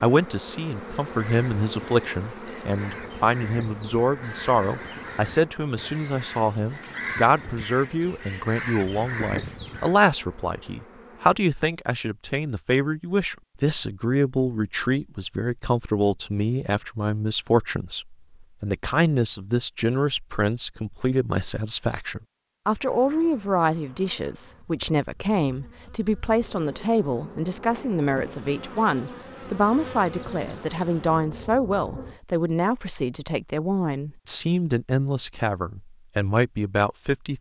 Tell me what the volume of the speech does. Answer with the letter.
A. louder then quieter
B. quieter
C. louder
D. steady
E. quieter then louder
D.